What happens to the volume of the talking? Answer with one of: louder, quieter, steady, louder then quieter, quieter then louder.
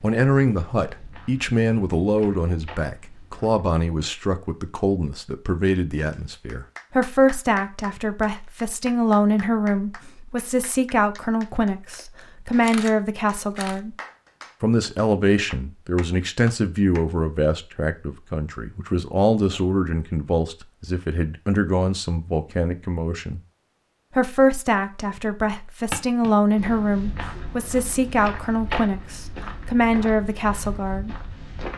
steady.